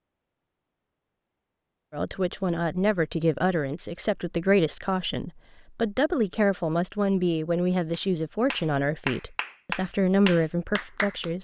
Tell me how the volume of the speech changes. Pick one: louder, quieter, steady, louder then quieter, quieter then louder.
steady.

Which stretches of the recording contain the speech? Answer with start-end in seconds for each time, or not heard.
1.9-11.3.